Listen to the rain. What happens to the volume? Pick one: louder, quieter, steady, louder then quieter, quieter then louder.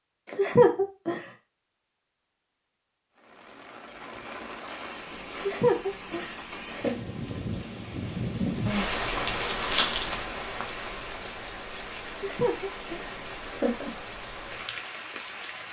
louder then quieter.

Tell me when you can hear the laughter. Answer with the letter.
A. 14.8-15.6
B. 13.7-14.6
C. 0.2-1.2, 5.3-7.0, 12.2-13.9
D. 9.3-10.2
C.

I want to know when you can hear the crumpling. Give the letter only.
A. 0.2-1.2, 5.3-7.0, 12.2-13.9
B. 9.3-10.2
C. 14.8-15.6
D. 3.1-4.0
B.